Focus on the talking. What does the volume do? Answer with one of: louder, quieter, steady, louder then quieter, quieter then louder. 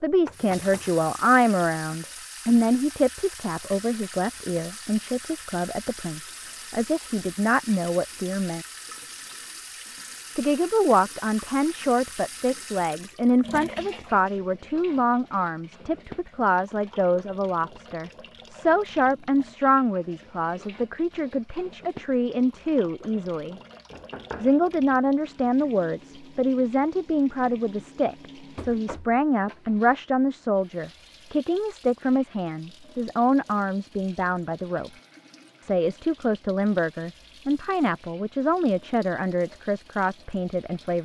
steady.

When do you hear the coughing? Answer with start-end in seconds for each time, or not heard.
not heard.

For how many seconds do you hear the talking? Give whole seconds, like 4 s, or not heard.
38 s.